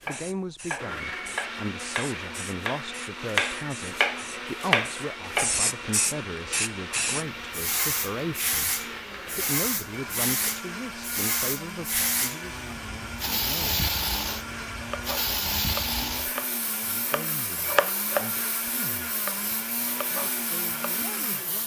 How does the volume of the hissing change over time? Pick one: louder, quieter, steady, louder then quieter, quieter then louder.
louder then quieter.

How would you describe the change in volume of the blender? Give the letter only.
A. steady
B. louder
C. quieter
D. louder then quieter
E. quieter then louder
A.